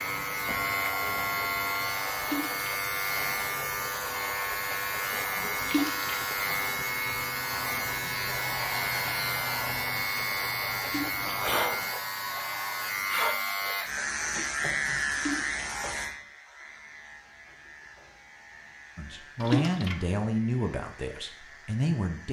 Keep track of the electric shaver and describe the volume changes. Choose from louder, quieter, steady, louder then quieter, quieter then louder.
quieter.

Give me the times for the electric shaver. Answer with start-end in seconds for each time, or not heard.
0.0-22.2.